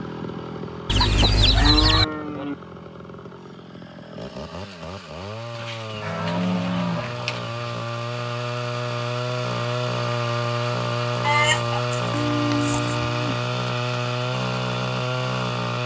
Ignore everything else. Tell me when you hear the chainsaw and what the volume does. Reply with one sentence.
You can hear the chainsaw from 0.0 to 15.8 s, getting louder.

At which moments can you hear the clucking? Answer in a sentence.
The clucking can be heard from 0.8 to 2.0 s, from 5.5 to 7.5 s and from 11.2 to 13.0 s.